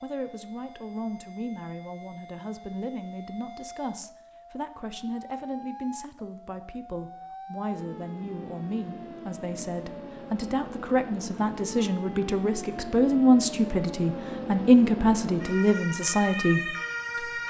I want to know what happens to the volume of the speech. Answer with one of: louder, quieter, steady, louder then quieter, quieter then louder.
louder.